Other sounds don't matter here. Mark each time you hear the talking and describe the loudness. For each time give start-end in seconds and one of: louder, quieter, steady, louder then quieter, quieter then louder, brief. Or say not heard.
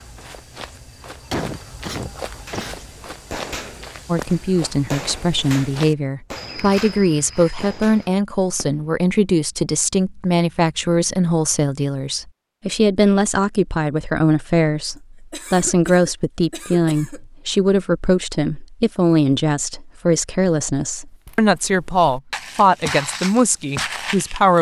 4.0-24.5 steady.